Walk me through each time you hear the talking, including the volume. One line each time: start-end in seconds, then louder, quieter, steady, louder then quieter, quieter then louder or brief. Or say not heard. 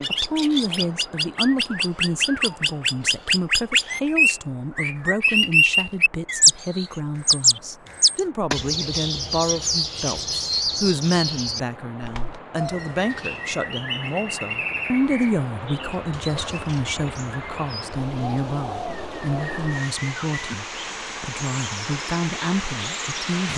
0.1-23.5 steady.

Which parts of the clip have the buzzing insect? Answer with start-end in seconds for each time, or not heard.
not heard.